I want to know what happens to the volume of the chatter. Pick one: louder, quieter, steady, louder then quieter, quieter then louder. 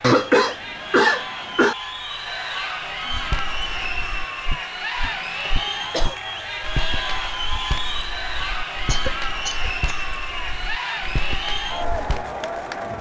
steady.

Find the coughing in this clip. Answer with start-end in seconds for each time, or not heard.
0.0-1.8, 5.5-6.2, 8.8-10.1.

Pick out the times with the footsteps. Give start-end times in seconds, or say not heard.
3.0-12.2.